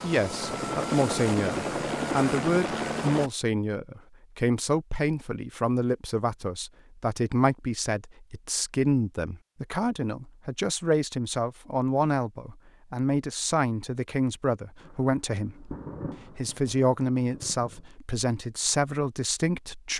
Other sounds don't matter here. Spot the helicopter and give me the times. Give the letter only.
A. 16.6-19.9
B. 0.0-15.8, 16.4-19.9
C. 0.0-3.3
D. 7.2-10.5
C.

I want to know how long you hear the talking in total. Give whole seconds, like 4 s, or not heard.
19 s.